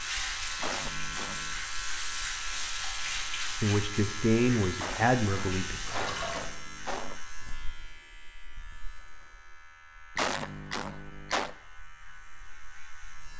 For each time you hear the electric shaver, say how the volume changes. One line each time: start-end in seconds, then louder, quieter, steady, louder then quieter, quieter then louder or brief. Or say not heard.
0.0-13.3 quieter.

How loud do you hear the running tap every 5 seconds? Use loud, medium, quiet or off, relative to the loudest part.
loud, loud, off.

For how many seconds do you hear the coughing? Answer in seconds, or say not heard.
5 s.